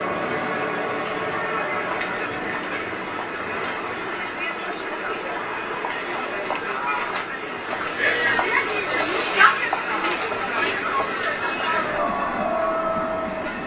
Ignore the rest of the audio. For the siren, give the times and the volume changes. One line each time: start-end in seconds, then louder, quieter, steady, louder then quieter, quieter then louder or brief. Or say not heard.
not heard.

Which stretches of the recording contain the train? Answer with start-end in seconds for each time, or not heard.
0.0-13.6.